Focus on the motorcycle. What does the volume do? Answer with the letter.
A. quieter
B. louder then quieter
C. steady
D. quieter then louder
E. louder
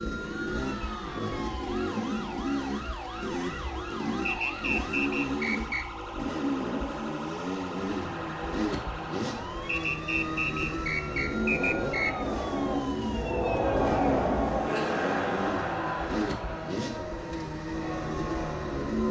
C.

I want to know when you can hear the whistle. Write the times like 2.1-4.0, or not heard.
4.2-5.8, 9.7-12.2.